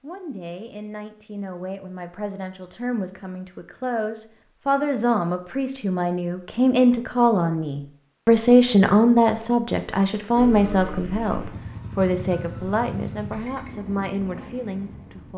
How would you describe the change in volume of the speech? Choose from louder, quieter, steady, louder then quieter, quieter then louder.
louder then quieter.